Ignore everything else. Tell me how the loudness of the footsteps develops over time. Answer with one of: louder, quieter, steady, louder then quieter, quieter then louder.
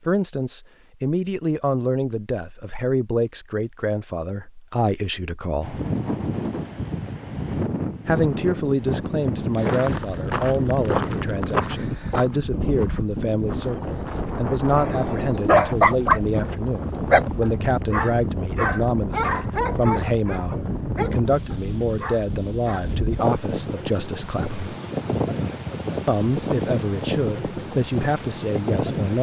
louder then quieter.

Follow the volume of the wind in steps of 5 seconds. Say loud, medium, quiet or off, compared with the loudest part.
off, loud, loud, loud, loud, loud.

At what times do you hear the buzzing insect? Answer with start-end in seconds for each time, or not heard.
not heard.